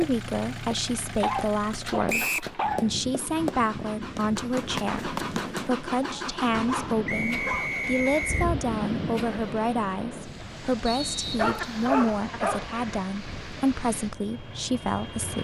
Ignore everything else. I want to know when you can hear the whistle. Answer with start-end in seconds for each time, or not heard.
2.0-2.5, 7.0-8.4, 10.8-11.9.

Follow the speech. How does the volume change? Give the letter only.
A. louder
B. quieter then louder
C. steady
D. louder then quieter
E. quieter
C.